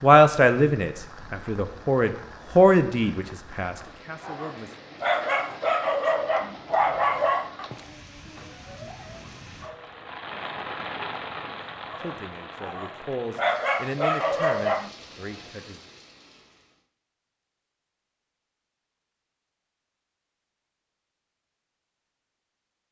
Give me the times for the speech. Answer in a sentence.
You can hear the speech from 0.0 to 4.8 s and from 12.0 to 15.8 s.